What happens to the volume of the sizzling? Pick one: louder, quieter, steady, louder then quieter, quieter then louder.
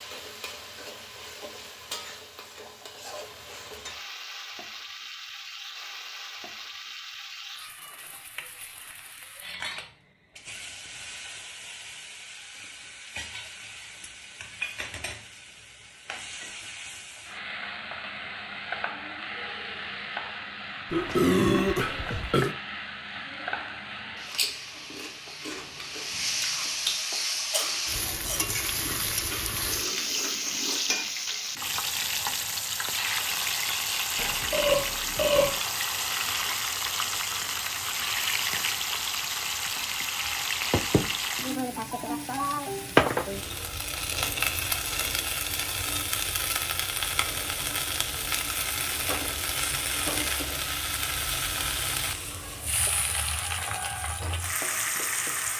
louder.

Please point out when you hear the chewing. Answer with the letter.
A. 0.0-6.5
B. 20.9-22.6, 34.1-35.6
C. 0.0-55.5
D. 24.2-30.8
D.